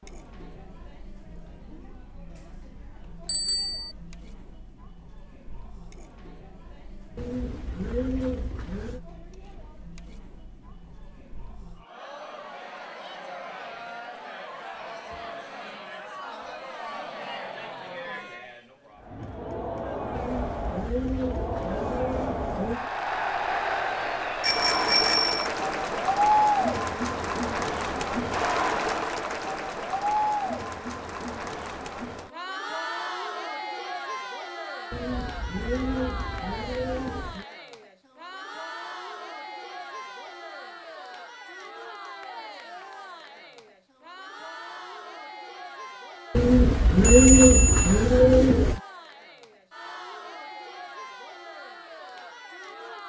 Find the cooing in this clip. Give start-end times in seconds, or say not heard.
7.2-9.0, 20.1-22.9, 34.9-37.5, 46.4-48.8.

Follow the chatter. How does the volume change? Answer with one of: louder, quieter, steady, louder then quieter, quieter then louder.
louder then quieter.